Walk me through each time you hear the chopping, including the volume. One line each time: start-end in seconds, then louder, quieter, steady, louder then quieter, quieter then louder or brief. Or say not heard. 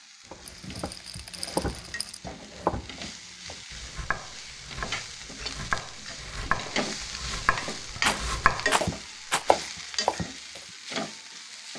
0.3-10.7 louder.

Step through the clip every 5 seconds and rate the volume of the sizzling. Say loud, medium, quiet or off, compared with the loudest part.
medium, loud, loud.